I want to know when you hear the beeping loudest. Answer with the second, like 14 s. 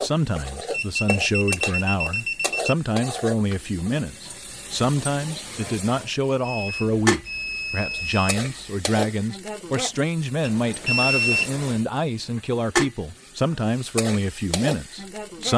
11 s.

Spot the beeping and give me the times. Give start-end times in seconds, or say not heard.
0.7-2.8, 6.4-8.8, 10.4-11.7.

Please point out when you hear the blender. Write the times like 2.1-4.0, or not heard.
not heard.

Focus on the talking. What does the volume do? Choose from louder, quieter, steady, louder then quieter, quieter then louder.
steady.